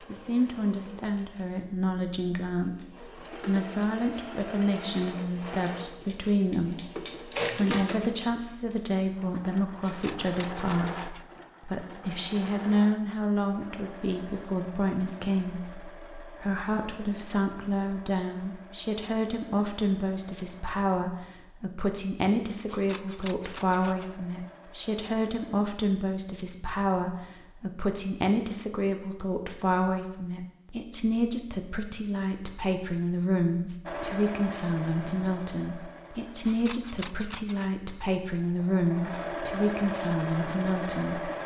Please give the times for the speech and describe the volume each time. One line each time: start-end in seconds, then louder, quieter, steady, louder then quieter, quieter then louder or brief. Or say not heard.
0.1-41.3 steady.